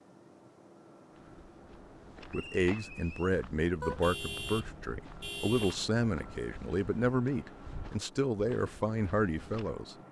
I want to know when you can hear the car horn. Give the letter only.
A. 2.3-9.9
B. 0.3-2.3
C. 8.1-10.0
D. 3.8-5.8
D.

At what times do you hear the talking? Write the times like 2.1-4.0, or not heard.
2.3-9.9.